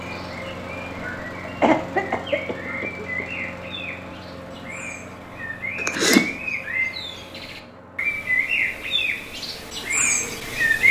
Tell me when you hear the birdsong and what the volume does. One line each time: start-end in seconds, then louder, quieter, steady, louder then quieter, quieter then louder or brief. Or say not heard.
0.0-10.8 louder.